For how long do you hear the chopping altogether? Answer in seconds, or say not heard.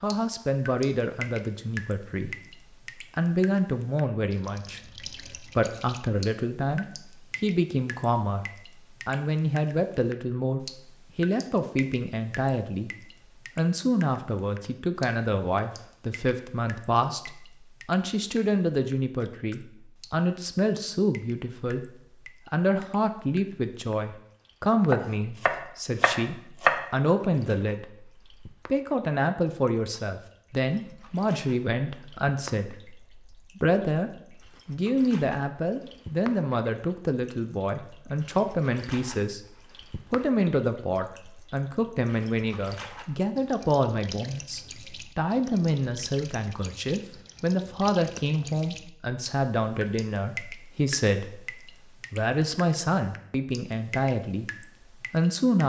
2 s.